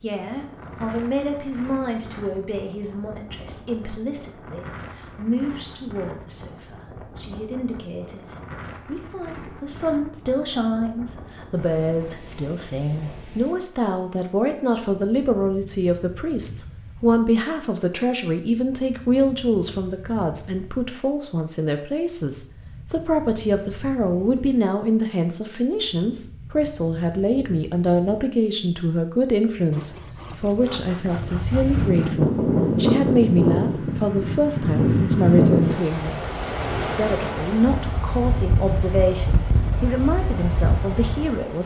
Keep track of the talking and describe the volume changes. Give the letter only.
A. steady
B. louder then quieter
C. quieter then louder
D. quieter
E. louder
E.